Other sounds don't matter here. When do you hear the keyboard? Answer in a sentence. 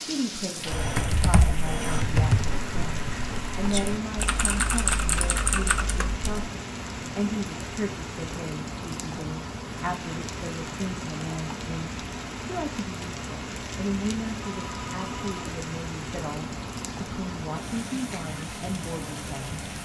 The keyboard can be heard from 0.7 to 6.2 s.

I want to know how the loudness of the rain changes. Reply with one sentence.
The volume of the rain stays about the same.